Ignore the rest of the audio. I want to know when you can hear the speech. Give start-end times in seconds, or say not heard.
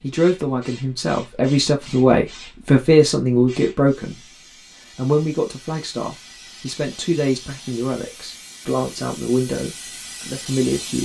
0.0-4.2, 5.0-10.9.